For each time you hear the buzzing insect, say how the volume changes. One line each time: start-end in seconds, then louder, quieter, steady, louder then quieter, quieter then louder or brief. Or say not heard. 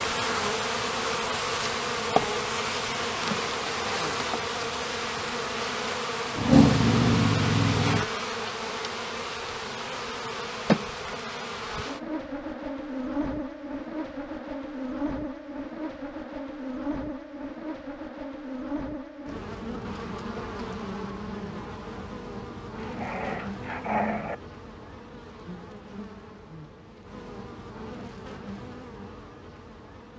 0.0-30.1 quieter.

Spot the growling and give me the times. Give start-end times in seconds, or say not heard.
6.3-8.1, 22.8-24.4.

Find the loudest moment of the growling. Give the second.
7 s.